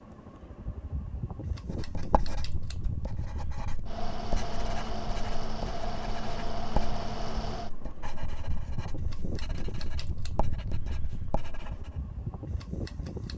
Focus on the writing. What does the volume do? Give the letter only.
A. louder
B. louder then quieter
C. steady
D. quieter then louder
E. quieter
B.